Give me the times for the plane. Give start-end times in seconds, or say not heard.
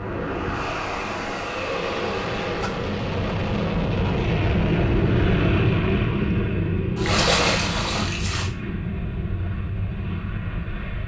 0.0-11.0.